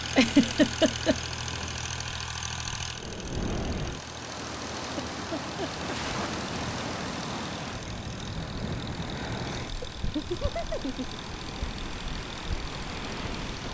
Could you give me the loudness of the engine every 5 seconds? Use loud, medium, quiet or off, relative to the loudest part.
loud, medium, medium.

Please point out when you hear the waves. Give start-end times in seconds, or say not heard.
0.0-13.6.